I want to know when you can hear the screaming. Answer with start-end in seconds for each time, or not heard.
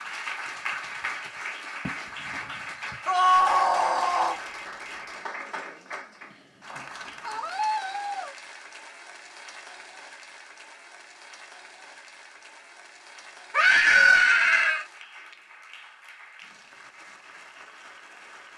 3.0-4.3, 7.2-8.3, 13.5-14.8.